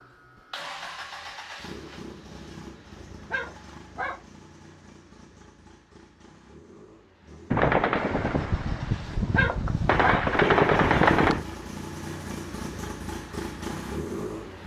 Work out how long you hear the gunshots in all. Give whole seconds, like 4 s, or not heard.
4 s.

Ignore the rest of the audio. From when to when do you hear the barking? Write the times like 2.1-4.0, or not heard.
3.3-4.2, 9.3-10.2.